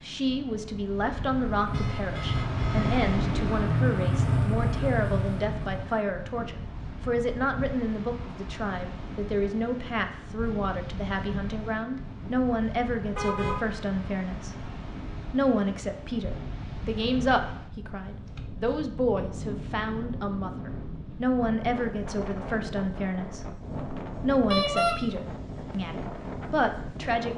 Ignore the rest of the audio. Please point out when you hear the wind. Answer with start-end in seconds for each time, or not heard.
0.0-27.3.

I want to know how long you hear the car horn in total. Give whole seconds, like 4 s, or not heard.
2 s.